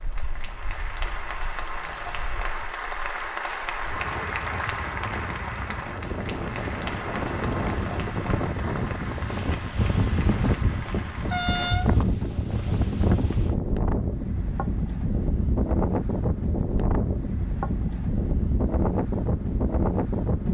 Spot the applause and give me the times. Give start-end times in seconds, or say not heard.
0.0-11.8.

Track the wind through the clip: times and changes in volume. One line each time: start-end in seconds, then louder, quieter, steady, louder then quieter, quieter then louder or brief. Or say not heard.
0.0-20.4 louder.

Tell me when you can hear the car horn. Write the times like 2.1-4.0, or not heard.
11.3-11.9.